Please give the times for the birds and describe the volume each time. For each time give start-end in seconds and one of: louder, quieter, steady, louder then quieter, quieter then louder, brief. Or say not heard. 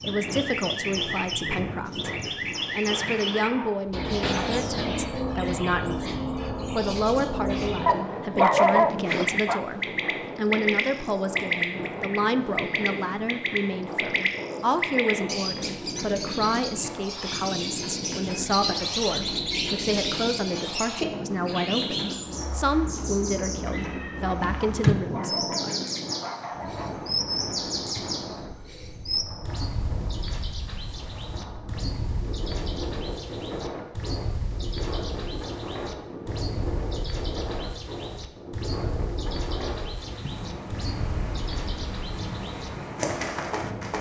0.0-43.9 quieter.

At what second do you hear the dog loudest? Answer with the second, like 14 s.
9 s.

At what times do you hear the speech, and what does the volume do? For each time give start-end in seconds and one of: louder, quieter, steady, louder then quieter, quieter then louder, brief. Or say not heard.
0.0-25.8 steady.